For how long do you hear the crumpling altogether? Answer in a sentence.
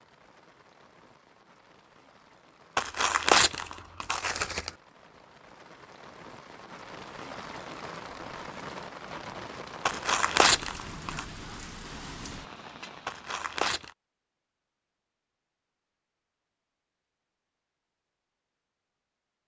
The crumpling can be heard for 4 seconds in total.